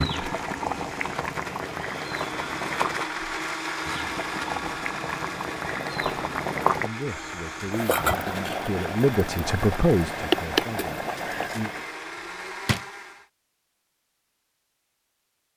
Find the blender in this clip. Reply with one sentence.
The blender can be heard from 0.0 to 13.2 s.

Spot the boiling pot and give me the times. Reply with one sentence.
The boiling pot can be heard from 0.0 to 11.8 s.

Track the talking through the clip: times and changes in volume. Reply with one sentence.
You can hear the talking from 6.8 to 11.7 s, getting louder then quieter.